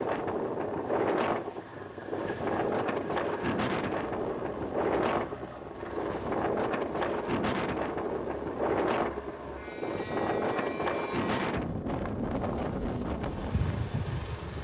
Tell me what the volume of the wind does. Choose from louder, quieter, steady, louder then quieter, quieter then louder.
steady.